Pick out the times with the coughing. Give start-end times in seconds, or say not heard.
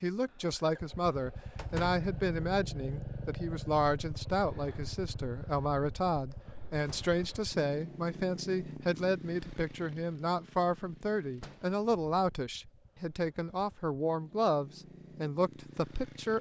not heard.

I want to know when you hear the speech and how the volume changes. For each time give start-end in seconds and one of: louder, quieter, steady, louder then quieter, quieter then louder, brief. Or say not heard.
0.0-16.3 steady.